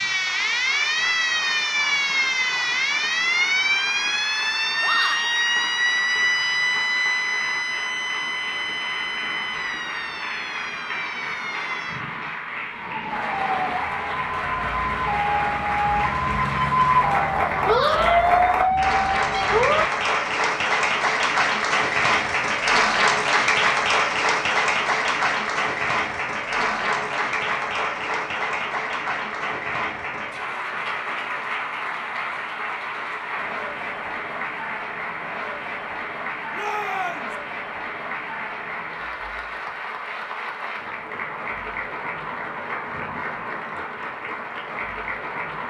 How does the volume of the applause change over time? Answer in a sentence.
The volume of the applause goes up, then down.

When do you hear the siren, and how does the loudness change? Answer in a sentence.
You can hear the siren from 0.0 to 19.9 s, getting quieter then louder.